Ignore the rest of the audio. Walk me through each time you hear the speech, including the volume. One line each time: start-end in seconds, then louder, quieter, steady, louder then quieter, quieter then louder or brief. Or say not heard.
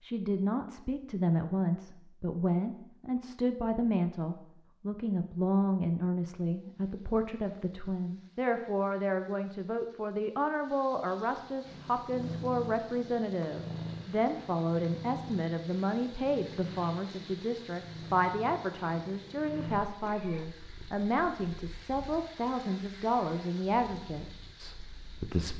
0.0-25.5 steady.